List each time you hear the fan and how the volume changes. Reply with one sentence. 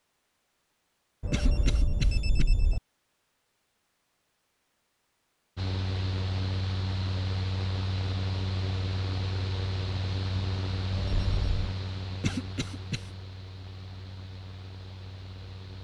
You can hear the fan from 5.5 to 15.7 s, getting quieter.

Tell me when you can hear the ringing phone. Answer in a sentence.
You can hear the ringing phone from 1.2 to 2.8 s and from 10.9 to 11.8 s.